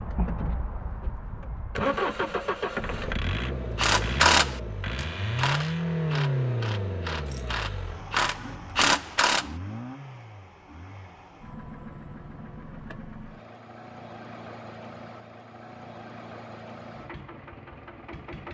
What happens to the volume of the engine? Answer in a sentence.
The volume of the engine goes down.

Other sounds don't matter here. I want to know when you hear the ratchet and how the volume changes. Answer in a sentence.
You can hear the ratchet from 3.8 to 9.4 s, getting quieter then louder.